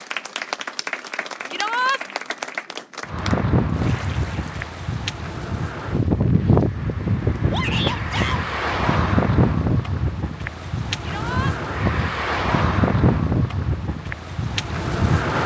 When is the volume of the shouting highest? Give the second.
2 s.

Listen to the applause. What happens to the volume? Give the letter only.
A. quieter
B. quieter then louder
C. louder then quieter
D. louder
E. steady
A.